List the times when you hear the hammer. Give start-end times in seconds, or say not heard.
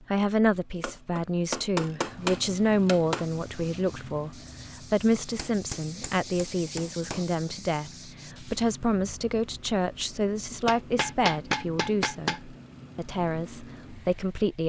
0.8-3.2, 5.3-7.2, 10.7-12.4.